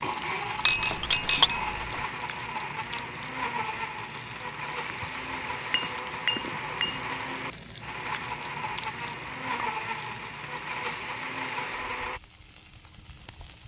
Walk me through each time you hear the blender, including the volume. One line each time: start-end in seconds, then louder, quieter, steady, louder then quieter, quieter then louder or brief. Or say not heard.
0.0-12.2 steady.